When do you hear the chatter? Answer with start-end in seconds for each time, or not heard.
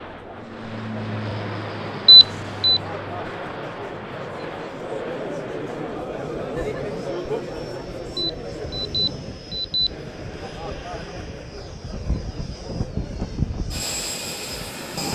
0.0-14.9.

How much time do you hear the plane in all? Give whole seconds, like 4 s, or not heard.
15 s.